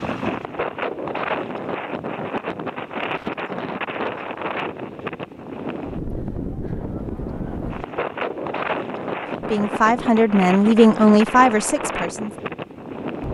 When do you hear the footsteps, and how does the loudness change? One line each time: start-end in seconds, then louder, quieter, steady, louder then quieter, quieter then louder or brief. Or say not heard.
not heard.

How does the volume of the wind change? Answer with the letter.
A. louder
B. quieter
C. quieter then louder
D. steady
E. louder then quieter
D.